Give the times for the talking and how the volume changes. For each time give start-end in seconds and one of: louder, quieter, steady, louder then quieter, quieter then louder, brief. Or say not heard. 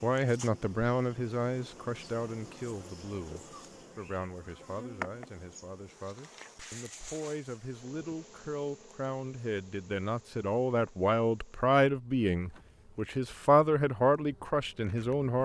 0.0-15.4 quieter then louder.